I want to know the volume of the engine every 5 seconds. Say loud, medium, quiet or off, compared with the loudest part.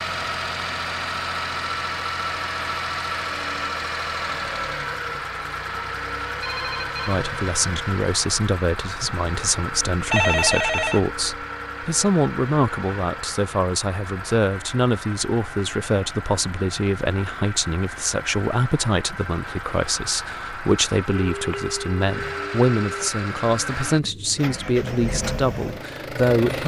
loud, loud, medium, medium, medium, loud.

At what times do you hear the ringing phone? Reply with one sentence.
The ringing phone can be heard from 6.4 to 7.2 s, from 10.1 to 11.2 s and from 21.1 to 23.1 s.